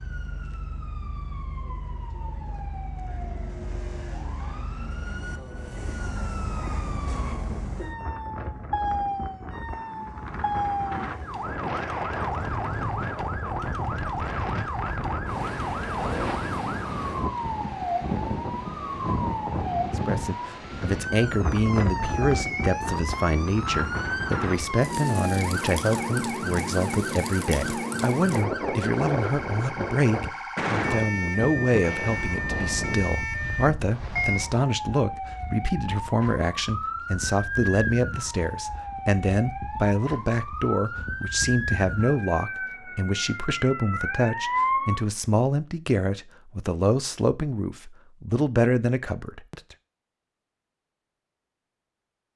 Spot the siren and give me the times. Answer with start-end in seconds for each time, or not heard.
0.0-45.0.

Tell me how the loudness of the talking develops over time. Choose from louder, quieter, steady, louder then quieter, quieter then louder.
steady.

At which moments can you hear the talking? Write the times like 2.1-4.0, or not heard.
19.9-49.6.